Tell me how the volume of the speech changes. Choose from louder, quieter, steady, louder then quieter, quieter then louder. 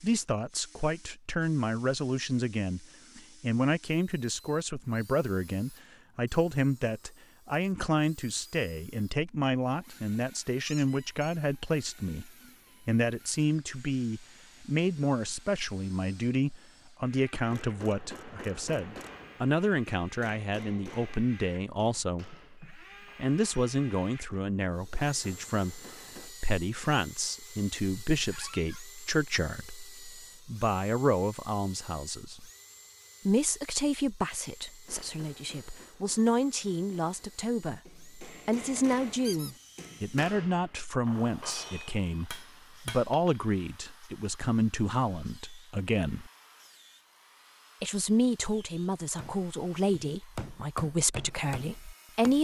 steady.